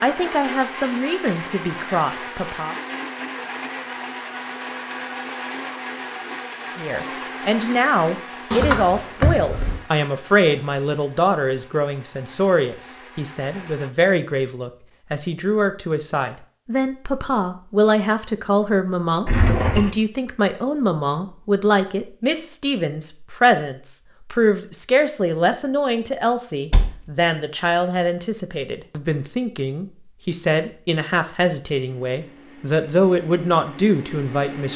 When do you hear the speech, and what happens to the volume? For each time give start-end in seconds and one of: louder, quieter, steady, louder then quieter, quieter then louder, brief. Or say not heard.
0.0-2.8 brief
6.8-34.7 steady.